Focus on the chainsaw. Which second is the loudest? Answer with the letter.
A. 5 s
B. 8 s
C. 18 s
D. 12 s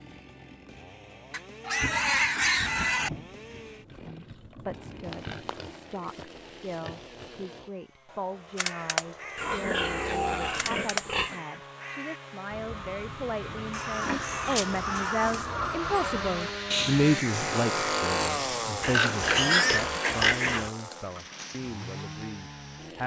C.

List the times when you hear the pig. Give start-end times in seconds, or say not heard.
1.3-3.1, 5.0-7.2, 9.3-11.4, 14.0-15.6, 18.8-20.7.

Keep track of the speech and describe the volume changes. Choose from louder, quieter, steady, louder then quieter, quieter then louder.
louder then quieter.